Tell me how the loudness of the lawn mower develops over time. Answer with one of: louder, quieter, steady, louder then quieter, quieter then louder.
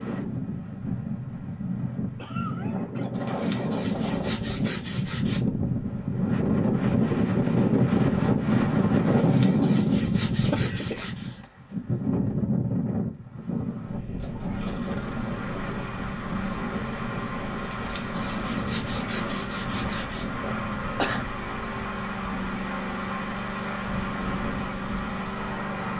louder.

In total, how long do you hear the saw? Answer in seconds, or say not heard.
7 s.